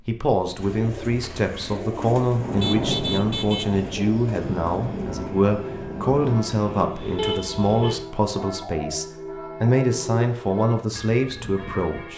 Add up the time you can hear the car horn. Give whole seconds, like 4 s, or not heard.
2 s.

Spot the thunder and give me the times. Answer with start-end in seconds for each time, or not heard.
2.3-7.1.